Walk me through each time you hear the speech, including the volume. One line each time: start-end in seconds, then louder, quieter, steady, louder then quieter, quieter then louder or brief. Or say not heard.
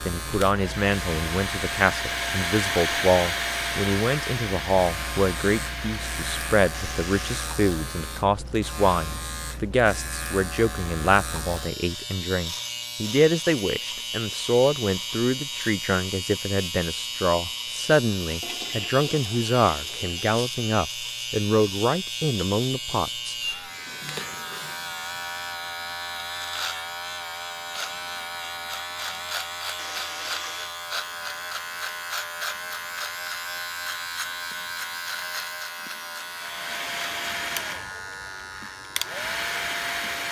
0.1-23.4 steady.